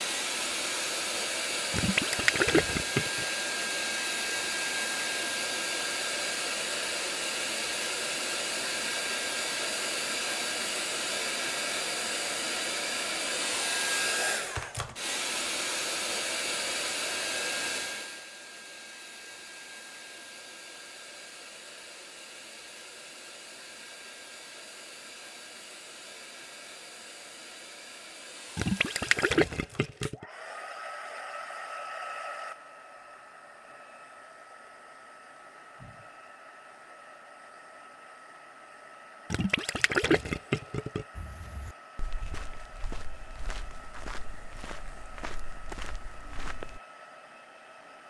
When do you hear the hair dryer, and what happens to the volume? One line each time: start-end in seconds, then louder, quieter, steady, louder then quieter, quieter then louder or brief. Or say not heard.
0.0-48.0 quieter.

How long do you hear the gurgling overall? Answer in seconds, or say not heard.
5 s.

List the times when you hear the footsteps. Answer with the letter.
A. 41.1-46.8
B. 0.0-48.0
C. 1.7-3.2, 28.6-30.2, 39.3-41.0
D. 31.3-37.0
A.